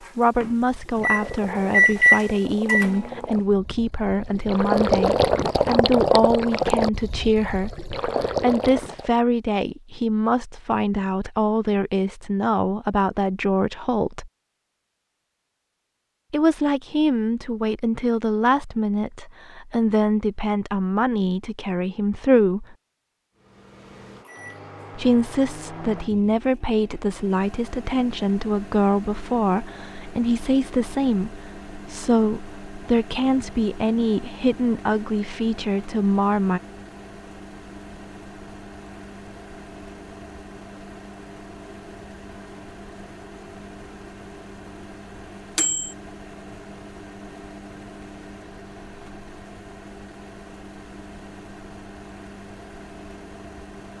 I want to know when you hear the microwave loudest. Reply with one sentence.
The loudest moment of the microwave is at 2 seconds.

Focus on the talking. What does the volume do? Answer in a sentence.
The volume of the talking stays about the same.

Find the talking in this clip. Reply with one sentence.
You can hear the talking from 0.1 to 14.3 s, from 16.3 to 22.8 s and from 24.9 to 36.6 s.